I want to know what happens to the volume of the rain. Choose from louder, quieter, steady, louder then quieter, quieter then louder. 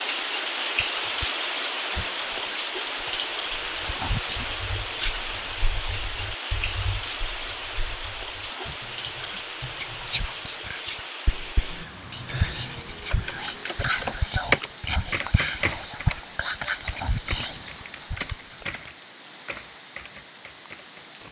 quieter.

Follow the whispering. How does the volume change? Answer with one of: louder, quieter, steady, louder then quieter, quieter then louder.
louder.